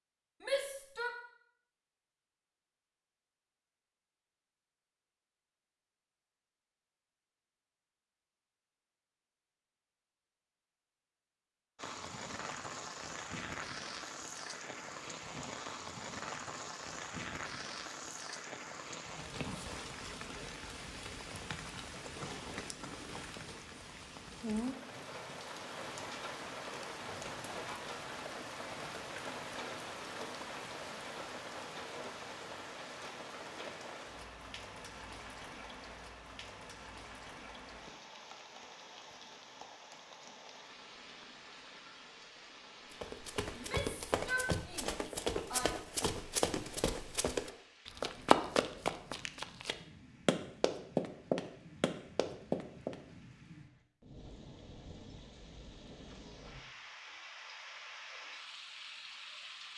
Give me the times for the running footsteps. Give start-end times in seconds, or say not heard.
42.9-53.0.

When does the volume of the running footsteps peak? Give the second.
48 s.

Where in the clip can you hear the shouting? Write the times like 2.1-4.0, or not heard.
0.4-1.1, 43.5-45.7.